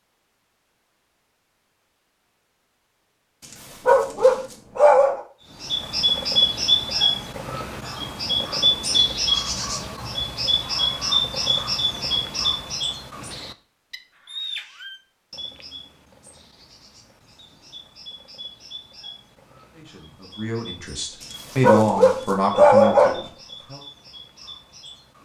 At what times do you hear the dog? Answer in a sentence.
You can hear the dog from 3.9 to 5.2 s and from 21.2 to 23.2 s.